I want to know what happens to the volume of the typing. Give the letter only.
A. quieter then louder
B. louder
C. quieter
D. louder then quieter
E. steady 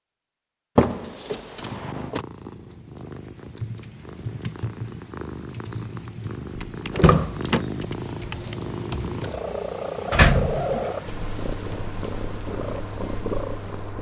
A.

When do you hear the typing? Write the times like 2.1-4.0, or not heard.
3.5-9.4.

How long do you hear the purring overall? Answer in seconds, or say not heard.
12 s.